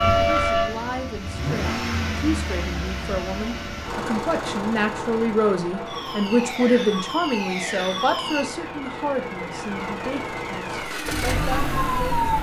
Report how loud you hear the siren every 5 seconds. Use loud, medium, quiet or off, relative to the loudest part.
loud, medium, loud.